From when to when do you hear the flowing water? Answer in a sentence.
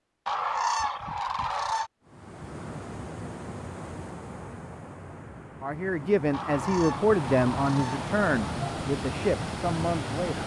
You can hear the flowing water from 2.0 to 10.4 s.